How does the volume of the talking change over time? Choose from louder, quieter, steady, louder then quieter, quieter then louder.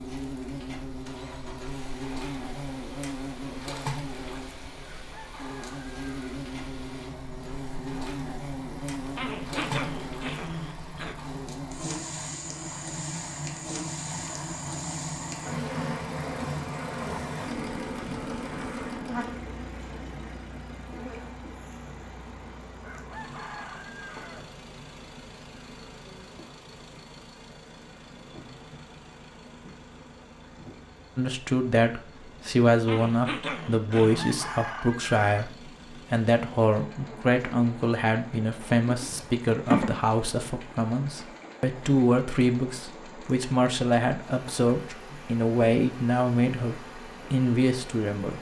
steady.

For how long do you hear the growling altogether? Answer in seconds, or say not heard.
4 s.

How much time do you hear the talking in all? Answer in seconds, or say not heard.
17 s.